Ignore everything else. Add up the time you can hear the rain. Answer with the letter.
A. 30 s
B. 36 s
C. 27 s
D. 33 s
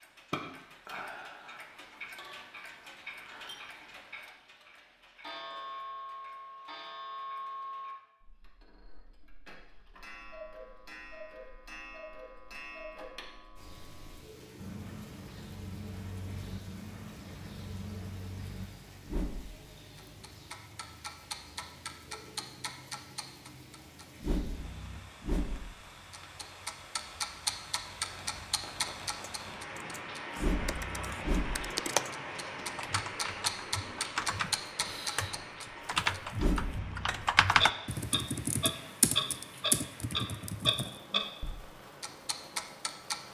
A.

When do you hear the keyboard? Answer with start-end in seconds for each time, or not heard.
29.2-41.0.